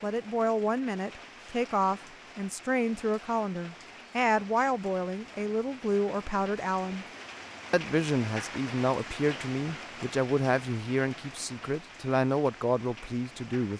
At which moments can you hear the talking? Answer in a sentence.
The talking can be heard from 0.0 to 7.0 s and from 7.7 to 13.7 s.